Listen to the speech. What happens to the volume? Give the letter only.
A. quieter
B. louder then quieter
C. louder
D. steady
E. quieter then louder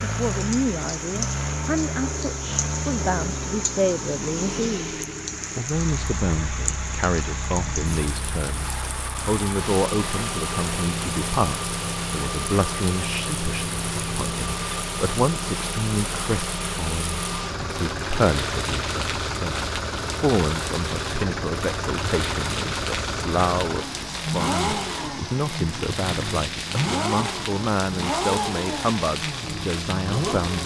D.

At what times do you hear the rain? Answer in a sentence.
You can hear the rain from 0.0 to 30.6 s.